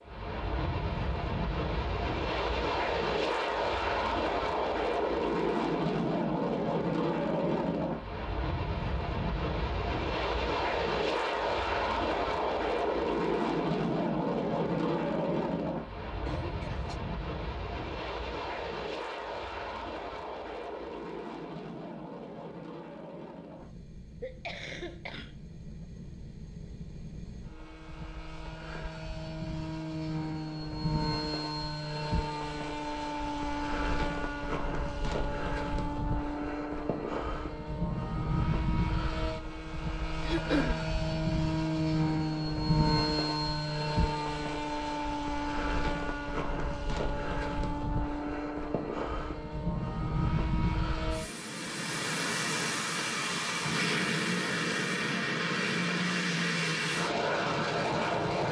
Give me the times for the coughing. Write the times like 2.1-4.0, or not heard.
16.2-17.0, 24.2-25.4, 40.2-40.8.